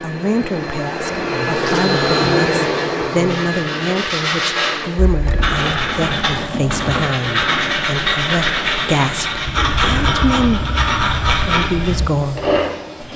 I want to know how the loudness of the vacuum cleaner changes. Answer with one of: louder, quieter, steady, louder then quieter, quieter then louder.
quieter.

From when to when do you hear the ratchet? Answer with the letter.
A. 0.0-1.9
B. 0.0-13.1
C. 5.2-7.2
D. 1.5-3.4
C.